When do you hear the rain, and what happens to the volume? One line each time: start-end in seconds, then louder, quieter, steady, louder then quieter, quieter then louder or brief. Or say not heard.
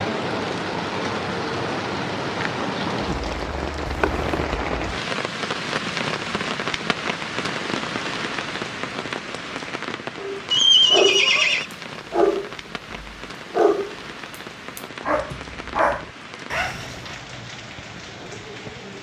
0.0-18.9 quieter.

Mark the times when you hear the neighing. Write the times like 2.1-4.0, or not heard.
3.9-4.4, 10.5-11.7.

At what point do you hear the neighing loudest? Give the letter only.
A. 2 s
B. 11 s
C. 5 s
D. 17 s
B.